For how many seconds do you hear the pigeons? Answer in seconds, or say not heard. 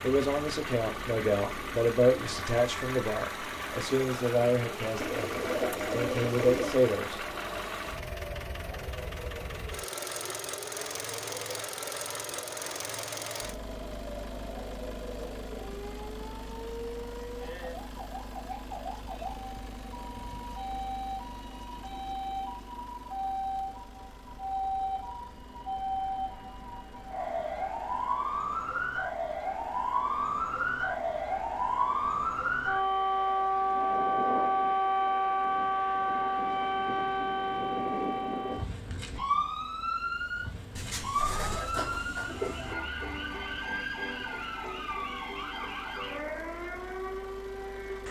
4 s.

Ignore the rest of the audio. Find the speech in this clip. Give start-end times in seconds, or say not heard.
0.0-7.2.